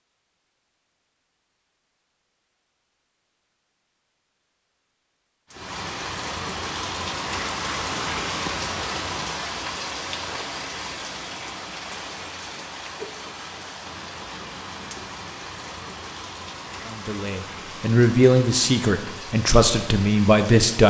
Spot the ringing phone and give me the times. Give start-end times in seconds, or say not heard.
not heard.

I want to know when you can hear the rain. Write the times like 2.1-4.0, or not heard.
5.5-20.8.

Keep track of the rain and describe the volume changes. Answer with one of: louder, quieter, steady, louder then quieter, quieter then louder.
quieter.